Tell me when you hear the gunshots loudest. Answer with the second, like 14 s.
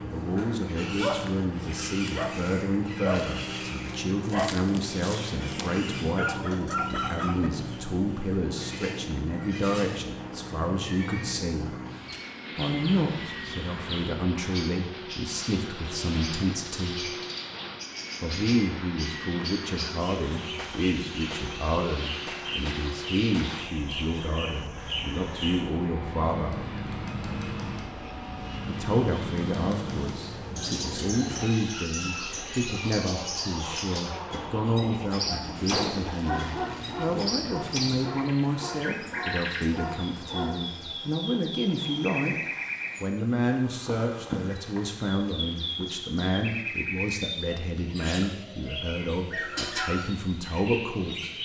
36 s.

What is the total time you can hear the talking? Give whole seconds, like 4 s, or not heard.
47 s.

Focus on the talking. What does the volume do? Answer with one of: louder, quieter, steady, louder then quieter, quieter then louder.
steady.